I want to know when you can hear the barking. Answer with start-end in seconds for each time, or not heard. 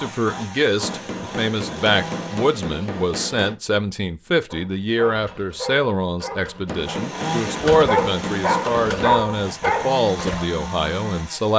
4.5-10.4.